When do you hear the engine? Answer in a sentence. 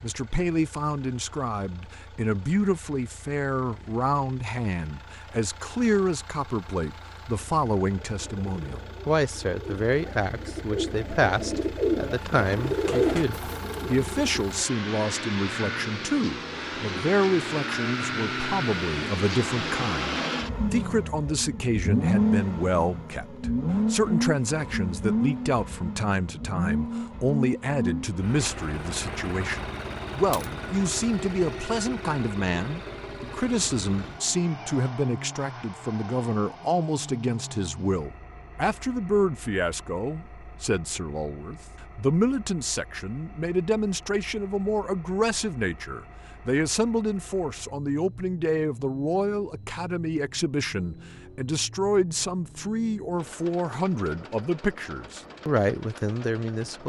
You can hear the engine from 0.0 to 56.8 s.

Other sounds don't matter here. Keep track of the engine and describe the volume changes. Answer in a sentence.
The loudness of the engine goes up, then down.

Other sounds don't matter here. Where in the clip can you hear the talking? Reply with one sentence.
The talking can be heard from 0.0 to 56.8 s.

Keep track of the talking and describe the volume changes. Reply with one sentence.
The loudness of the talking stays about the same.